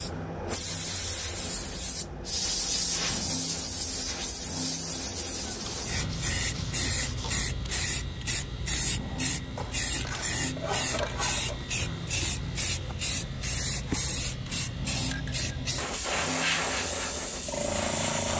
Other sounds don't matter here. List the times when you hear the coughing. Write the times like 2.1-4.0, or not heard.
not heard.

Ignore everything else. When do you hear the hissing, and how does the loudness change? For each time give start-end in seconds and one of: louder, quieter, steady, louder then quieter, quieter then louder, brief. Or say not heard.
0.0-18.3 steady.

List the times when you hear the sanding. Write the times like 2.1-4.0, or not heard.
5.4-7.5, 9.6-11.7.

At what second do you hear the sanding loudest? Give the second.
11 s.